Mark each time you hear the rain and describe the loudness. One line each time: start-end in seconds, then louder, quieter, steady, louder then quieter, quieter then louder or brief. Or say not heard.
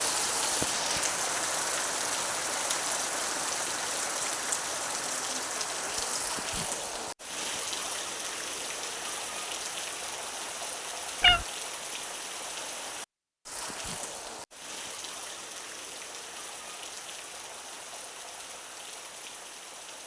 0.0-20.0 quieter.